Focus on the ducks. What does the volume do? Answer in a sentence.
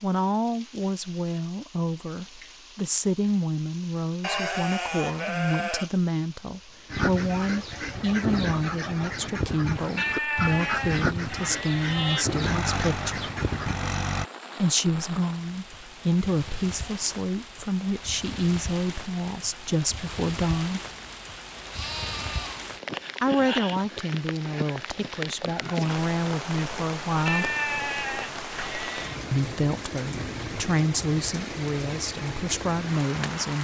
The volume of the ducks stays about the same.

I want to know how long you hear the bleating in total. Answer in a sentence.
You can hear the bleating for 7 seconds altogether.